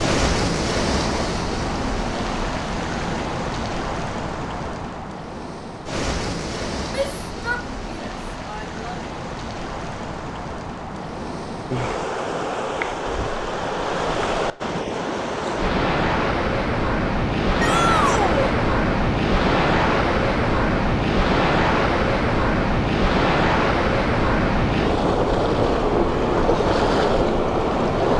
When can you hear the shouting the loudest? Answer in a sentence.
The loudest moment of the shouting is at 18 seconds.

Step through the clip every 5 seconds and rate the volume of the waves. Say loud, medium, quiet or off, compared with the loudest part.
medium, medium, medium, loud, loud, loud.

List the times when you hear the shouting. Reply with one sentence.
You can hear the shouting from 6.8 to 8.9 s and from 17.6 to 18.6 s.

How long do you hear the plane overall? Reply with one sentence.
You can't hear the plane here.